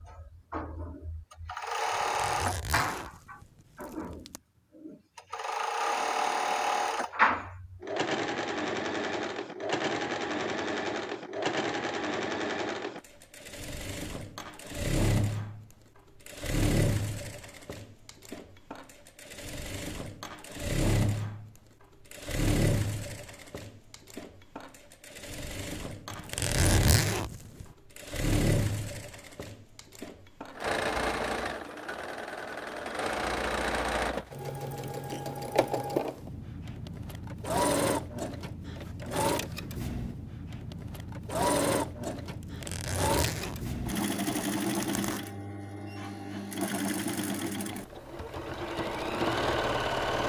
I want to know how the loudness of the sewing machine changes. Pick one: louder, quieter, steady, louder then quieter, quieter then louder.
steady.